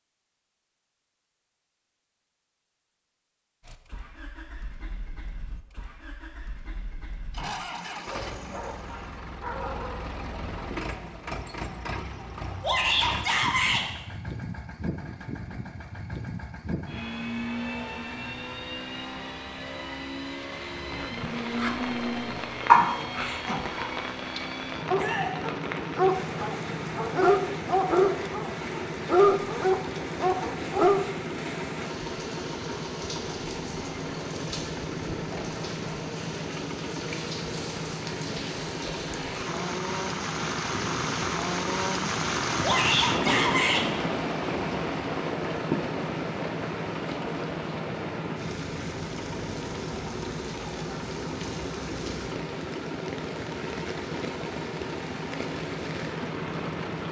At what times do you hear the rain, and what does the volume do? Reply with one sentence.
You can hear the rain from 20.7 to 57.0 s, getting louder then quieter.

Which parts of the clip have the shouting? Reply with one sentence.
The shouting can be heard from 12.6 to 13.8 s, from 24.9 to 25.4 s and from 42.6 to 43.9 s.